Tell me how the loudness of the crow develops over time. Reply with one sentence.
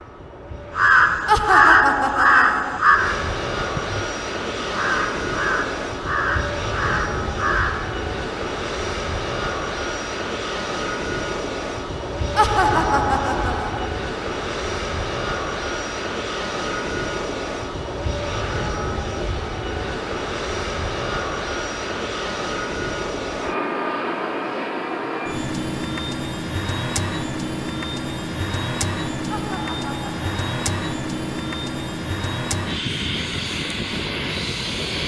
The loudness of the crow goes down.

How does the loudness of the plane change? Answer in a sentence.
The loudness of the plane stays about the same.